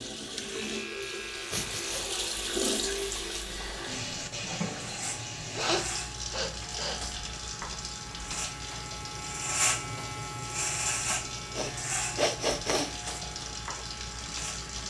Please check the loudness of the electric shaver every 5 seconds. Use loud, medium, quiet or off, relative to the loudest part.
medium, loud, loud.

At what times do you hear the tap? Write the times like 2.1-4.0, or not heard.
0.0-14.8.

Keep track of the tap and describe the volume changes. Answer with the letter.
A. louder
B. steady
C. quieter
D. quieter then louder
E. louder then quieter
C.